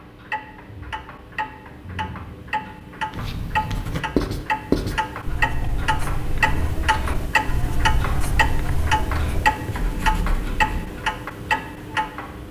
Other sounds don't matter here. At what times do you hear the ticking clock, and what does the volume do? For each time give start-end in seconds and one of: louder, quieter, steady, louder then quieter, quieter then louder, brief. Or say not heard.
0.0-12.4 louder.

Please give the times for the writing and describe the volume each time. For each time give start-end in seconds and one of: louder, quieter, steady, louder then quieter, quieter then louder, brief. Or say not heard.
3.1-10.9 quieter.